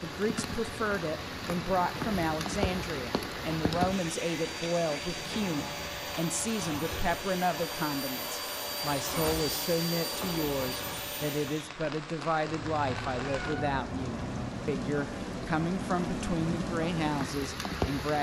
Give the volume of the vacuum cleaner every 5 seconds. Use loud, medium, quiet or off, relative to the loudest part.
medium, loud, loud, off.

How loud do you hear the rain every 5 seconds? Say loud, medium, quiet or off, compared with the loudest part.
loud, medium, medium, loud.